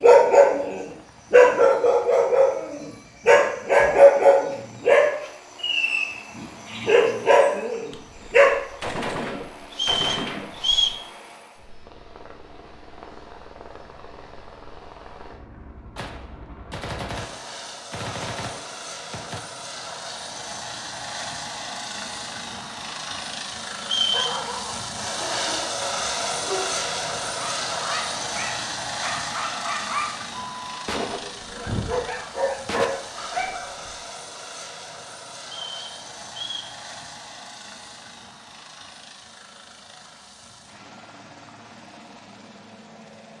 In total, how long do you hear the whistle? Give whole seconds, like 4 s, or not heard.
3 s.